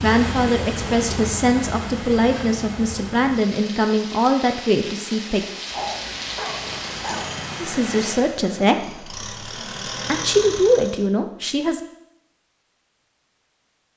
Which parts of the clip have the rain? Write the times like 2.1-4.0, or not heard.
0.0-8.3.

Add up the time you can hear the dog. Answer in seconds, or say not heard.
2 s.